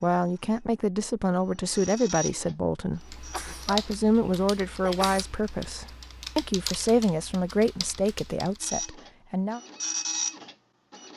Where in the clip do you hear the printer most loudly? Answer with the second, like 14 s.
10 s.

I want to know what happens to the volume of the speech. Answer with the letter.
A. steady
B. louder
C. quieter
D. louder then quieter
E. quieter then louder
A.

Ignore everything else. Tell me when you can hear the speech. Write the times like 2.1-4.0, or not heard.
0.0-9.6.